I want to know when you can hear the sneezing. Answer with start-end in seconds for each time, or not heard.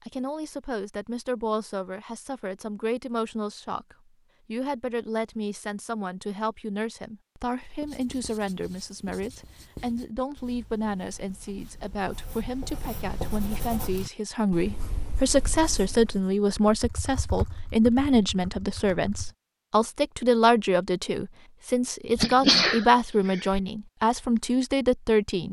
22.1-23.6.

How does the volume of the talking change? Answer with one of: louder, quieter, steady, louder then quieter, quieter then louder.
louder.